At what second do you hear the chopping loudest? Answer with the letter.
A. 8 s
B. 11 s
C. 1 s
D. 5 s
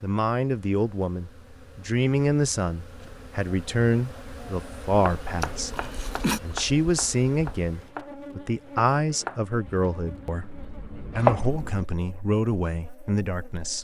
B.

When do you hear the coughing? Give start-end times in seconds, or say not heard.
5.5-6.4.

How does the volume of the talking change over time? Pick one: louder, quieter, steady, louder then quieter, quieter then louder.
steady.